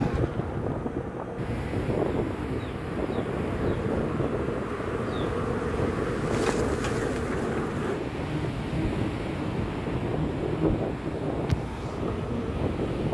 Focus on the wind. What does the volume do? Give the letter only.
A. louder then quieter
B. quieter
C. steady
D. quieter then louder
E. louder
C.